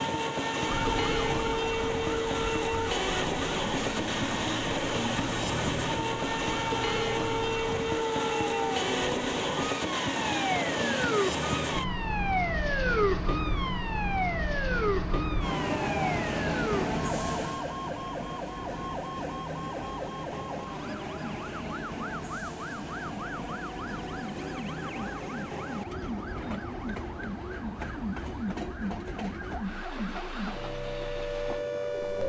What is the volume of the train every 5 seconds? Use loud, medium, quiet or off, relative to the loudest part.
loud, loud, loud, loud, medium, medium, quiet.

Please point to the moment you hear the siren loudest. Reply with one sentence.
The volume of the siren peaks at 13 seconds.